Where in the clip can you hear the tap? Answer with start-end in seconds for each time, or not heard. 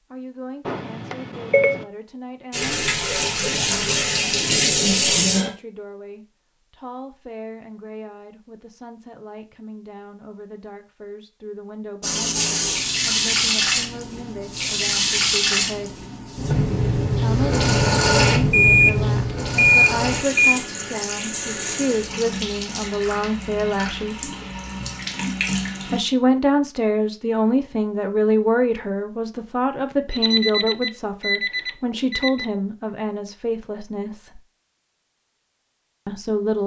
2.5-5.5, 12.0-26.0.